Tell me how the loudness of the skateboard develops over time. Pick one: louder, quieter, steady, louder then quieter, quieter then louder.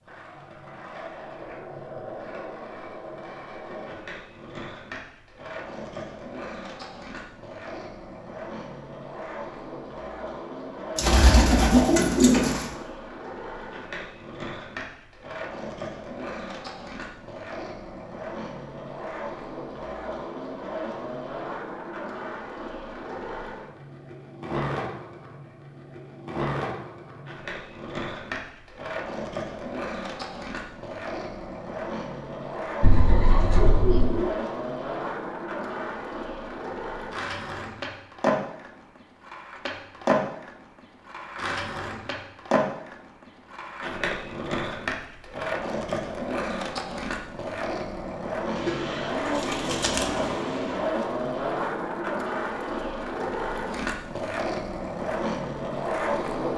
louder.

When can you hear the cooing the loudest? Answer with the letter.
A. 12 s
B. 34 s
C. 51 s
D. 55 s
A.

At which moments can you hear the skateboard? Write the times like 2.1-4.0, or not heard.
0.0-56.5.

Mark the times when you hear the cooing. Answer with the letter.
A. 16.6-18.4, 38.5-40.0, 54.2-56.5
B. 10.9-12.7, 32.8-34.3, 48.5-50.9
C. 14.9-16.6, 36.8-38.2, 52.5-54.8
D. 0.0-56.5
B.